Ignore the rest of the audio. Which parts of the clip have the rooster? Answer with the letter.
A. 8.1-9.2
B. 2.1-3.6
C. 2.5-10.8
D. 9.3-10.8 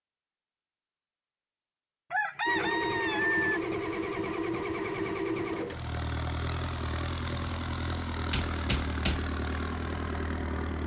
B.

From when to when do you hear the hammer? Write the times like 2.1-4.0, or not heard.
8.1-9.2.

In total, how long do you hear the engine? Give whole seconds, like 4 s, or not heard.
8 s.